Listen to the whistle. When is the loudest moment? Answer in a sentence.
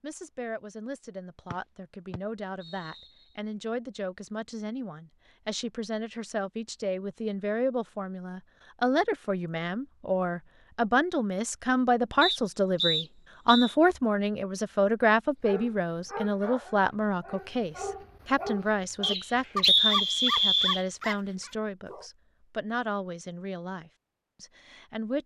The loudest moment of the whistle is at 20 seconds.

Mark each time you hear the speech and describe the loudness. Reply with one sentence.
You can hear the speech from 0.0 to 25.2 s, getting louder then quieter.